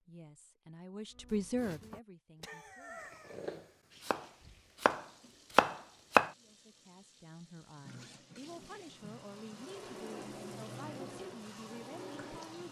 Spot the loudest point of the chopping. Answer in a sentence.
The volume of the chopping peaks at 6 seconds.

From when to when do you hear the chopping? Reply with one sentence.
The chopping can be heard from 1.1 to 6.3 s.